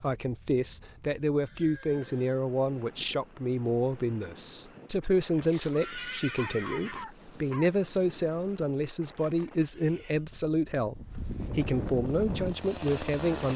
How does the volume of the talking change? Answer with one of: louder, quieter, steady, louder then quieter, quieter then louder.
steady.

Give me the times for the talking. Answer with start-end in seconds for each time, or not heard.
0.0-13.5.